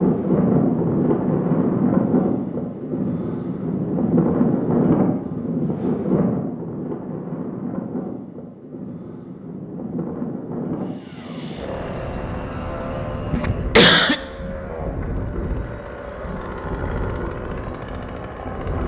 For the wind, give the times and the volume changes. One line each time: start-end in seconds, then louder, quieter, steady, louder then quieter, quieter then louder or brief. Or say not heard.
0.0-18.8 quieter.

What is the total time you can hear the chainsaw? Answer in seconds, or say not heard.
8 s.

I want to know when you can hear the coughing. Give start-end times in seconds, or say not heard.
13.3-14.2.